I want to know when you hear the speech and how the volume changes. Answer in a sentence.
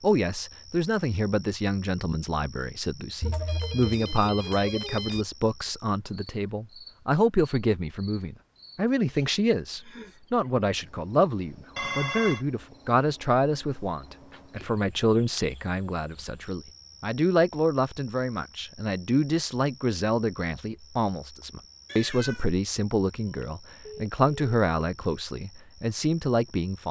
The speech can be heard from 0.0 to 26.8 s, at a steady volume.